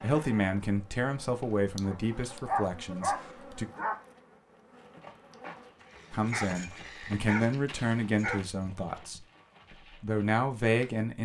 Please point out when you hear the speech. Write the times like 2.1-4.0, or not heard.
0.0-3.6, 6.1-9.2, 10.0-11.2.